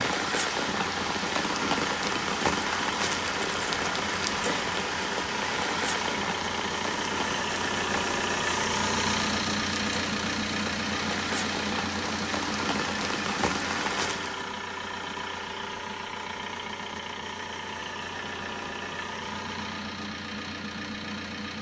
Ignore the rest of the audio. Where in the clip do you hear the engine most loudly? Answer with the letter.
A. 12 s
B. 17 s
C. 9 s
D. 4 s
C.